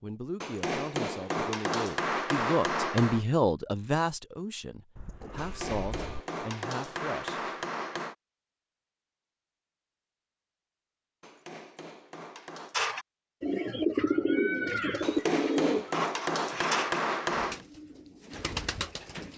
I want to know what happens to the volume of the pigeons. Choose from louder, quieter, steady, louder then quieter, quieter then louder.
quieter.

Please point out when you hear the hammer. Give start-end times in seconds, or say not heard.
0.4-3.2, 5.3-8.2, 11.2-12.8, 15.0-17.6.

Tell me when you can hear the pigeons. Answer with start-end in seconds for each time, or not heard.
12.7-19.3.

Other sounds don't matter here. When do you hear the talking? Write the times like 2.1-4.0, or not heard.
0.0-7.4.